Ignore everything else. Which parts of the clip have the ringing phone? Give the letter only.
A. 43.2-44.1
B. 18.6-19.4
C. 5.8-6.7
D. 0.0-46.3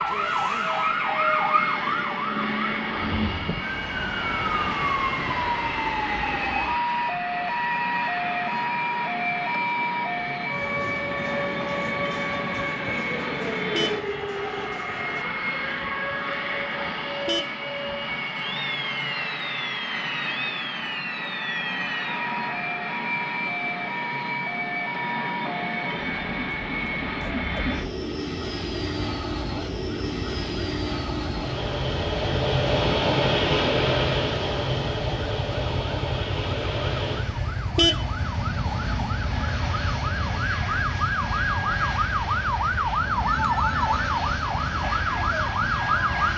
A.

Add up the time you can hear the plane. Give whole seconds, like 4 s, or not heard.
46 s.